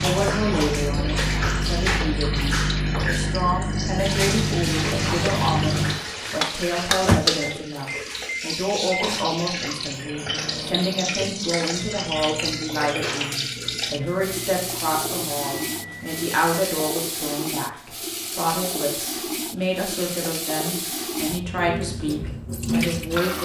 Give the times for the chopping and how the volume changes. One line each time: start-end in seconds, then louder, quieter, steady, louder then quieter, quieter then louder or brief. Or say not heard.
not heard.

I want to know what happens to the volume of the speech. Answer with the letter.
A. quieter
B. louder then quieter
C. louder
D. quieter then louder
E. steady
E.